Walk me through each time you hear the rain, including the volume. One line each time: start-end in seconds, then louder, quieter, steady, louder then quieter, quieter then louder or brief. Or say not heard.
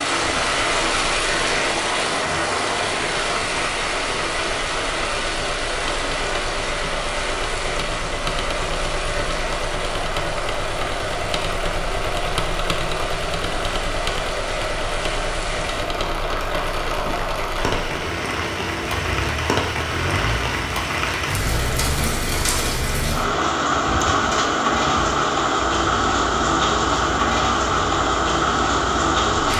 0.0-29.5 quieter then louder.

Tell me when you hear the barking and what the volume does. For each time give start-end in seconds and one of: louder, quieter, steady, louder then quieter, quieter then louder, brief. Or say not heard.
not heard.